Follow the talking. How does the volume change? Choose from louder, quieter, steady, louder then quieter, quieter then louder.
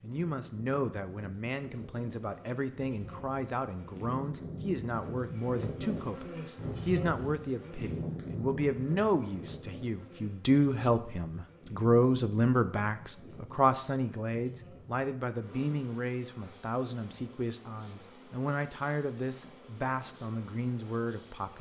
louder then quieter.